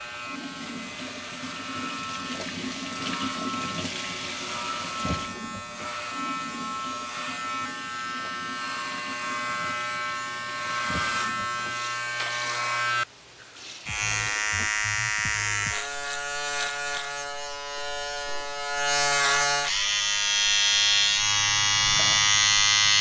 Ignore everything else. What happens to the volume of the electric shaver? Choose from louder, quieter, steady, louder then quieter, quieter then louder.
louder.